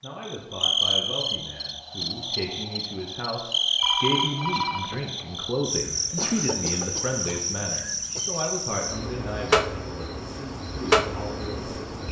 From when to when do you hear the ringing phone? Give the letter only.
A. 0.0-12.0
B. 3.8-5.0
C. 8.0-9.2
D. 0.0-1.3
B.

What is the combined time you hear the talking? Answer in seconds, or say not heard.
12 s.